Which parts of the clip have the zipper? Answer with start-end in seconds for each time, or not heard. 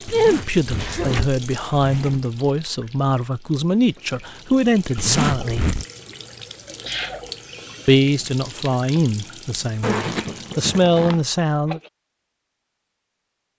0.1-2.2, 5.0-5.8, 9.8-11.2.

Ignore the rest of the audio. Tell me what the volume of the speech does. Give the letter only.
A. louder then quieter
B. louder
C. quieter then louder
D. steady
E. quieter
D.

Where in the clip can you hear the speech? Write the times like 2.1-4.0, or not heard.
0.1-5.8, 7.8-11.8.